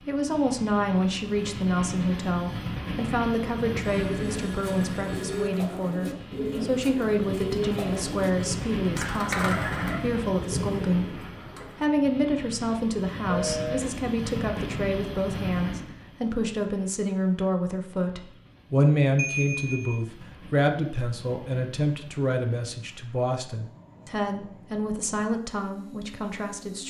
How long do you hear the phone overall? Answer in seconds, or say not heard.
3 s.